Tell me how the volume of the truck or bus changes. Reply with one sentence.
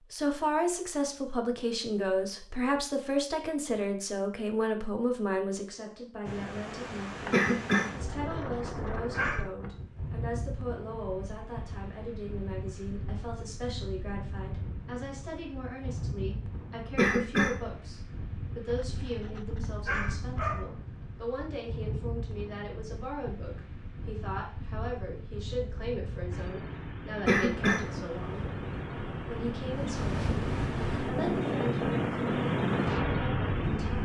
The loudness of the truck or bus goes up.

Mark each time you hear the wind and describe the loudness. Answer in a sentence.
You can hear the wind from 6.2 to 34.0 s, getting louder.